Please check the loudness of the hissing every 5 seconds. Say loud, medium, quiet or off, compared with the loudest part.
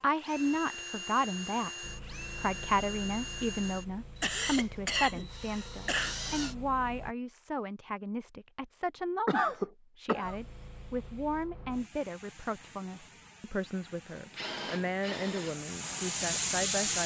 quiet, quiet, quiet, loud.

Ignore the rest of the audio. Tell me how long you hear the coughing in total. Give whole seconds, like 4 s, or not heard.
3 s.